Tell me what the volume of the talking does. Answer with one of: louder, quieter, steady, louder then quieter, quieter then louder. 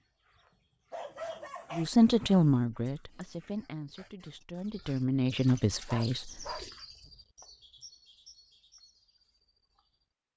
quieter then louder.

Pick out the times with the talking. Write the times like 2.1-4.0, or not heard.
1.7-6.5.